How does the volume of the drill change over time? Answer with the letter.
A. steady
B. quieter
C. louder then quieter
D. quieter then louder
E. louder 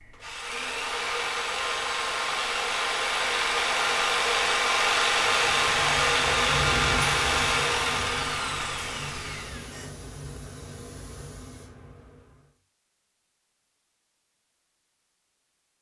C.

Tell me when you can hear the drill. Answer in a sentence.
The drill can be heard from 0.0 to 9.9 s.